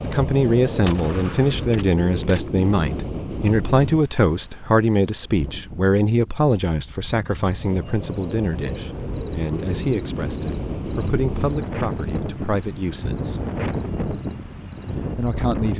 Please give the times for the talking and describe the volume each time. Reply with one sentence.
The talking can be heard from 0.0 to 13.4 s, getting quieter; and briefly from 15.2 to 15.7 s.